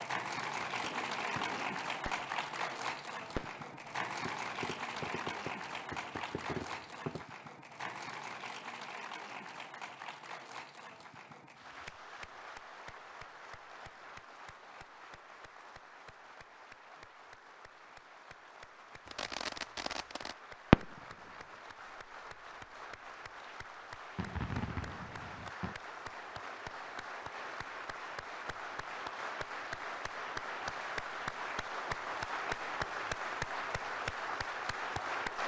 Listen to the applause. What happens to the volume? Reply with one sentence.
The volume of the applause goes down, then up.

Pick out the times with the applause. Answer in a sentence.
The applause can be heard from 0.0 to 35.4 s.